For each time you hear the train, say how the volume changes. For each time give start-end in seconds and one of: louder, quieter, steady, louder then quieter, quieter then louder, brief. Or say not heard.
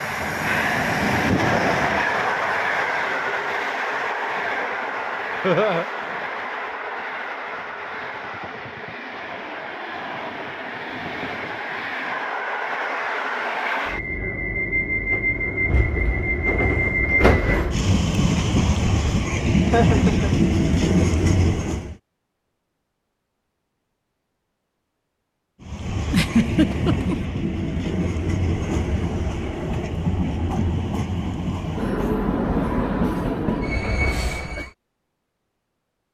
0.0-21.9 quieter then louder
25.6-34.7 steady.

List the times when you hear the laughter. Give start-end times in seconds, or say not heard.
5.4-5.8, 19.7-20.4, 26.1-27.1.